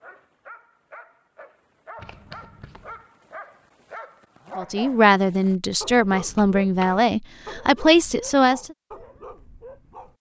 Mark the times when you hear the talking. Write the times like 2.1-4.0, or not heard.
4.5-8.7.